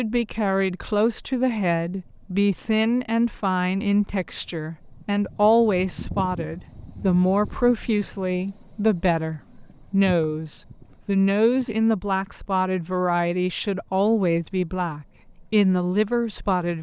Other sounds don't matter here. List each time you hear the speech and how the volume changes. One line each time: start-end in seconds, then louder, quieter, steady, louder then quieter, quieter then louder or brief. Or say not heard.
0.0-16.7 steady.